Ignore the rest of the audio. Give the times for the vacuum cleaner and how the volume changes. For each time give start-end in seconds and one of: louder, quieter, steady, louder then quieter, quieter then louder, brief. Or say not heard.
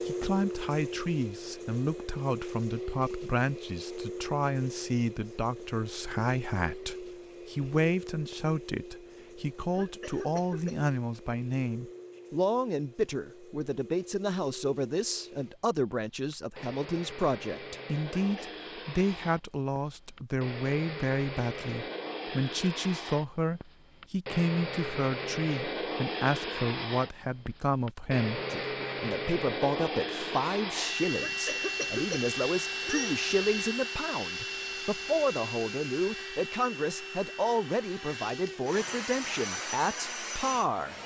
0.0-41.0 quieter then louder.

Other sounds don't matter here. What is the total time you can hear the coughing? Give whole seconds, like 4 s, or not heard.
4 s.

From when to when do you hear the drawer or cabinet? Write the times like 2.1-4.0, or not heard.
not heard.